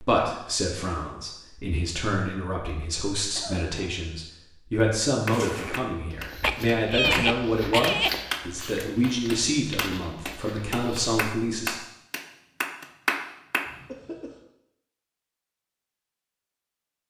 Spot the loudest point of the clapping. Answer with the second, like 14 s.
13 s.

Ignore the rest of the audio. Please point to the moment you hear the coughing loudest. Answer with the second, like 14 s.
7 s.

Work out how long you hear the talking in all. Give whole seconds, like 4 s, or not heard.
12 s.